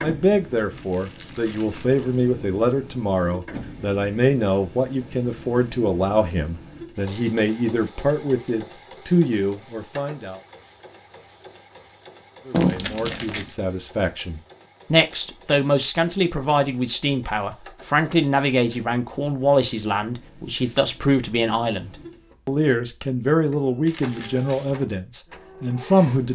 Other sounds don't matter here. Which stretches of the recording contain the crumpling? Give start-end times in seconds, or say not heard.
0.8-2.1, 12.5-13.5, 23.9-24.8.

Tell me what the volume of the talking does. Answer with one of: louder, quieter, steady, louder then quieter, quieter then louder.
steady.